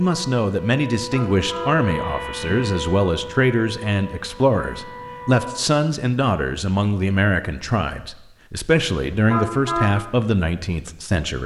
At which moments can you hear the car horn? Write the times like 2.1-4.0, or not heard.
0.9-1.8, 9.1-9.9.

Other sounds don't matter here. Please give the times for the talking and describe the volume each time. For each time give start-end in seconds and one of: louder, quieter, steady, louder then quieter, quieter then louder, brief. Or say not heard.
0.0-11.4 steady.